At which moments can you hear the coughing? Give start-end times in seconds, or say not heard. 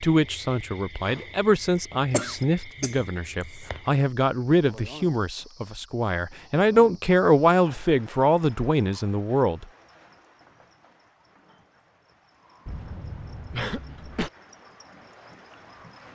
2.1-3.0, 12.7-14.3.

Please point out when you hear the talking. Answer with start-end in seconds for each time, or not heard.
0.0-9.7.